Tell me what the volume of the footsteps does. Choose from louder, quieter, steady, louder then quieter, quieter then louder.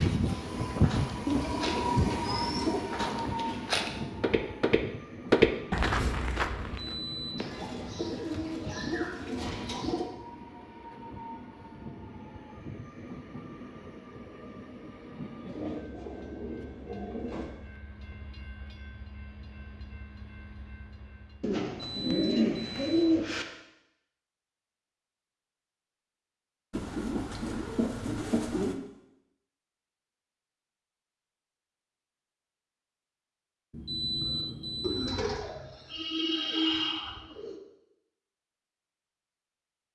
louder.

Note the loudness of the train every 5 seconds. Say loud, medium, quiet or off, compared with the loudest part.
loud, quiet, quiet, quiet, quiet, off, off, off.